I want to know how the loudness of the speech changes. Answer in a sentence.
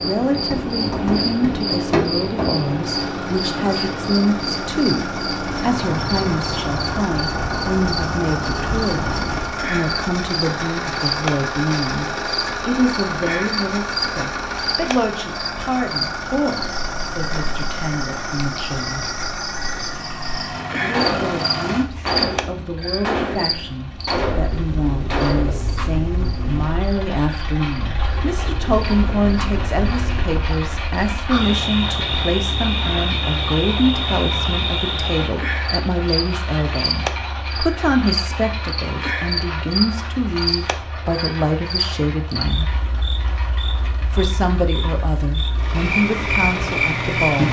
The loudness of the speech stays about the same.